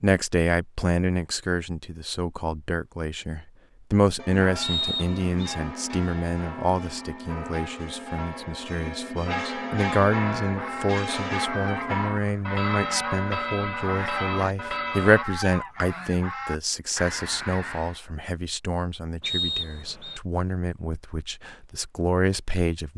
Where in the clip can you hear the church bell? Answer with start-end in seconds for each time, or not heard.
4.2-15.2.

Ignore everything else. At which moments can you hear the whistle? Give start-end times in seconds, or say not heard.
4.6-5.5, 19.2-20.2.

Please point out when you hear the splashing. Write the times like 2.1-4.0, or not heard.
not heard.